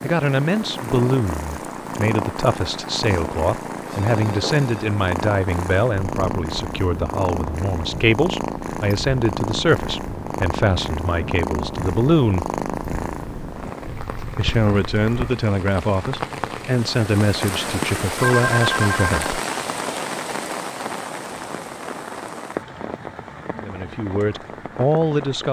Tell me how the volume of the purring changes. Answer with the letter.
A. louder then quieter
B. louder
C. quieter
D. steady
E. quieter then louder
D.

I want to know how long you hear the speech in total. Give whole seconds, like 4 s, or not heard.
19 s.